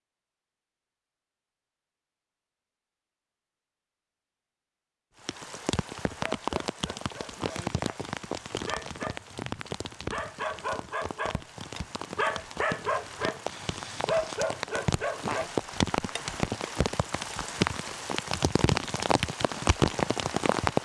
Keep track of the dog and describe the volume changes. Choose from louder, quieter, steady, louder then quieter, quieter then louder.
louder.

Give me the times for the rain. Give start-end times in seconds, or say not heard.
5.2-20.8.